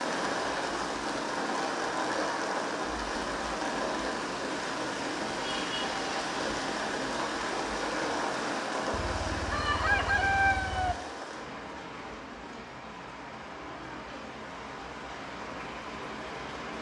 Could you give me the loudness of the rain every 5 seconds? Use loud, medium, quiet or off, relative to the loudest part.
loud, loud, medium, medium.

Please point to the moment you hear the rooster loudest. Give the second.
10 s.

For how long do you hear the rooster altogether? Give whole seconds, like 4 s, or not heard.
2 s.